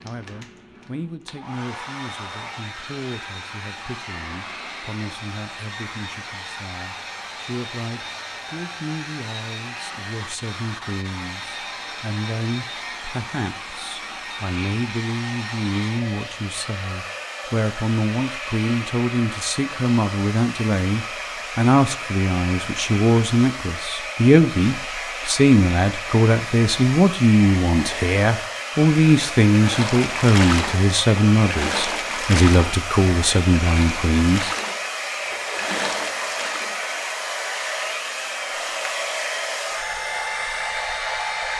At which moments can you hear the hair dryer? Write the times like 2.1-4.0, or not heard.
0.0-41.5.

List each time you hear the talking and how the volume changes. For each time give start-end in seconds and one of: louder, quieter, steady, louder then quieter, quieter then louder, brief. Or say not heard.
0.0-34.5 louder.